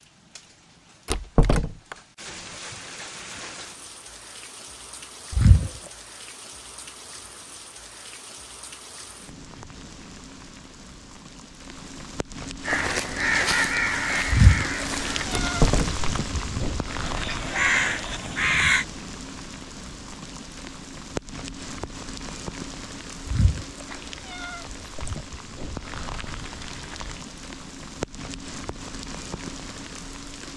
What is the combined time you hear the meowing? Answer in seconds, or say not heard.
4 s.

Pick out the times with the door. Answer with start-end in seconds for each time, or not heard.
1.1-1.9, 15.3-16.0.